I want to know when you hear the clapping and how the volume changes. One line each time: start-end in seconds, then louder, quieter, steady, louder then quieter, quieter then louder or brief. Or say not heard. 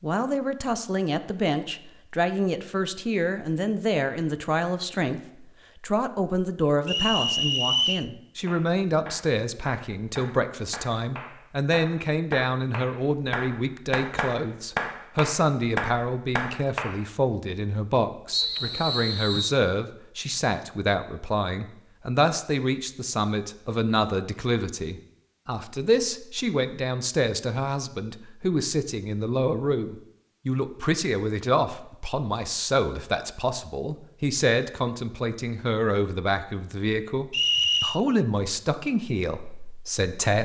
8.4-17.0 louder.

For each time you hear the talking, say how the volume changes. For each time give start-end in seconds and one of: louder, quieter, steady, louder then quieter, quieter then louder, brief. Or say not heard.
0.0-40.4 steady.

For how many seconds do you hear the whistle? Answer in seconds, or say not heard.
3 s.